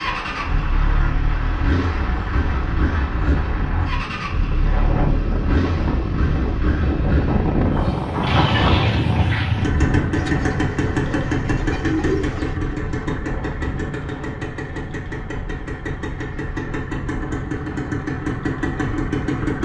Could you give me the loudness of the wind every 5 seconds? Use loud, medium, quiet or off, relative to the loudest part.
medium, loud, medium, quiet.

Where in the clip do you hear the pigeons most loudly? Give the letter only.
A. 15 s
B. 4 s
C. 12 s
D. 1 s
C.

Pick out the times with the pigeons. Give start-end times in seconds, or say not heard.
10.2-12.6.